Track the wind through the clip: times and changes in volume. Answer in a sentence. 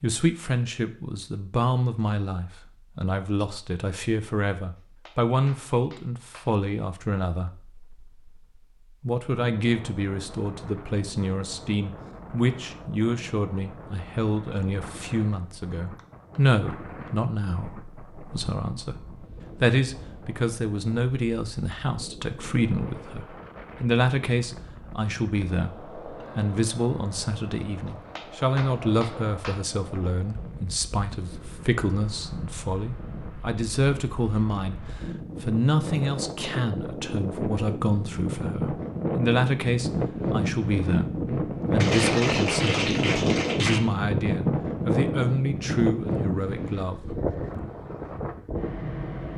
You can hear the wind from 9.3 to 49.3 s, getting louder.